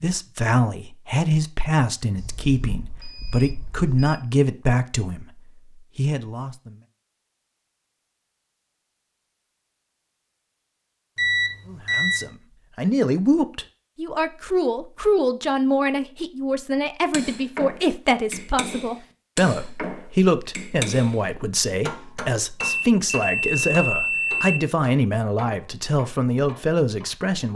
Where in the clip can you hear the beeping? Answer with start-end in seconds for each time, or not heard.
2.1-4.2, 11.2-12.3, 22.6-24.6.